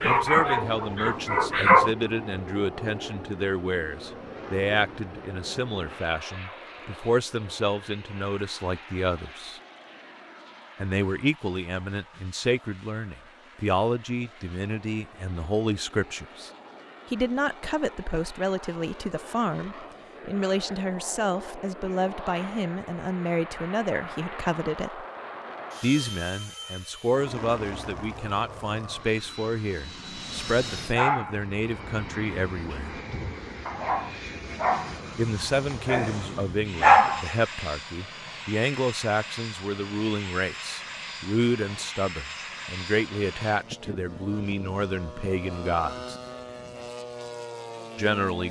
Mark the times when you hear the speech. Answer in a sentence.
The speech can be heard from 0.0 to 9.6 s, from 10.8 to 16.5 s, from 17.1 to 25.1 s, from 25.8 to 33.0 s, from 35.1 to 46.1 s and from 48.0 to 48.4 s.